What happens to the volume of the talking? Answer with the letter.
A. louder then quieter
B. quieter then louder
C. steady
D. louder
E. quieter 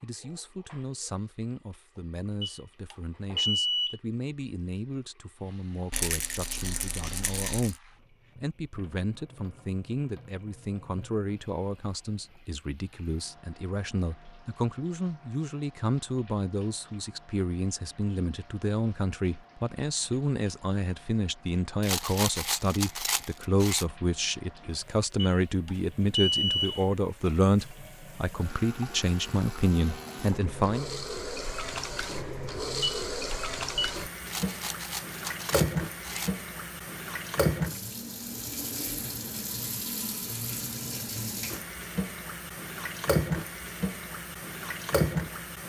D.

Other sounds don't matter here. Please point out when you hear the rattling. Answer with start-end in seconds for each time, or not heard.
5.9-7.8, 21.8-23.9, 34.2-36.4.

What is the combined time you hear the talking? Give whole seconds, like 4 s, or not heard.
31 s.